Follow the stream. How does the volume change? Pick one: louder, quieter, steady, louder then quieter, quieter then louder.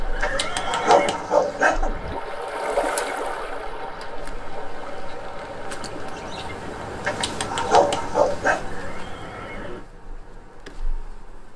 louder then quieter.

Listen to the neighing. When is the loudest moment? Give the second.
1 s.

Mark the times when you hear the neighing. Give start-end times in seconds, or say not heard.
0.1-1.1, 8.7-9.8.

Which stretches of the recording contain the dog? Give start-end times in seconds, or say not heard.
0.2-2.1, 7.0-8.6.